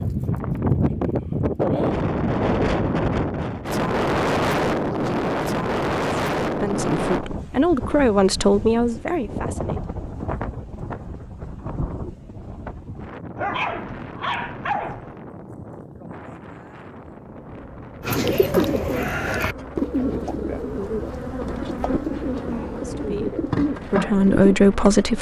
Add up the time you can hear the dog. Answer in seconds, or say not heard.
2 s.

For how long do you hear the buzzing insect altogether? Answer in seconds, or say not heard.
8 s.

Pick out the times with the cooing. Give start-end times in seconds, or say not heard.
18.0-24.6.